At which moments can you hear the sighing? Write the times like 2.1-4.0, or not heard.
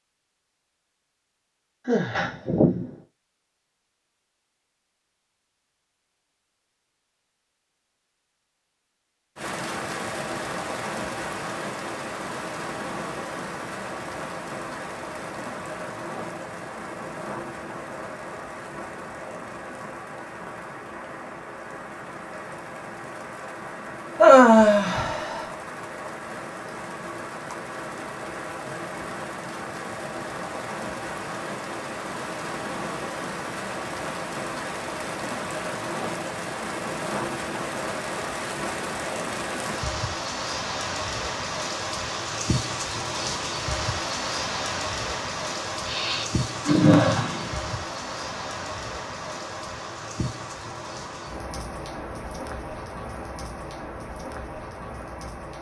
1.9-2.9, 24.1-25.4, 45.9-47.5.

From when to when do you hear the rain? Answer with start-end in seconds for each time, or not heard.
9.3-55.5.